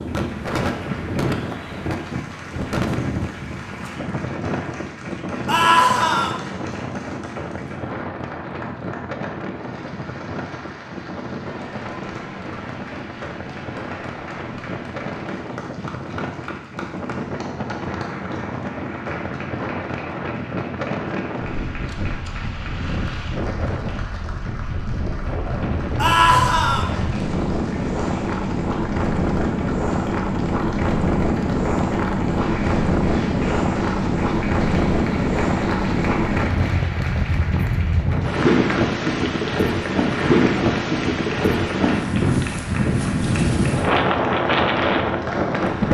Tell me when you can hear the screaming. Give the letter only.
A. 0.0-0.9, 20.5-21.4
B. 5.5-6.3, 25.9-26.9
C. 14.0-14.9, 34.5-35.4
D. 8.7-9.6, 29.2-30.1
B.